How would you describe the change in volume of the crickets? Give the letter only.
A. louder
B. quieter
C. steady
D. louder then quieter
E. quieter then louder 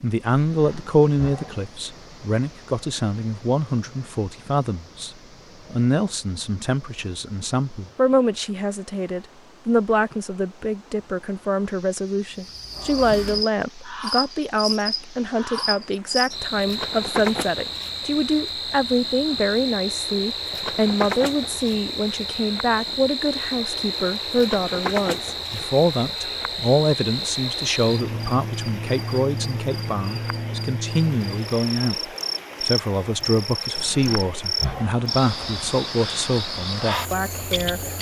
C.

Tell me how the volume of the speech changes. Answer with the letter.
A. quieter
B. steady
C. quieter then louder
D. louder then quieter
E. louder
B.